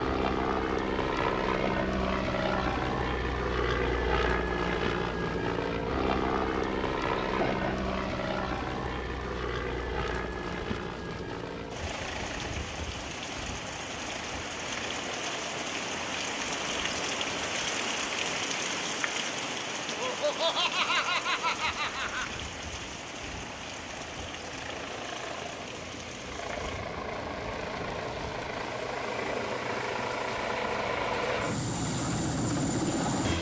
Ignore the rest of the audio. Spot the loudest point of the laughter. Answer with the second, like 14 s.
21 s.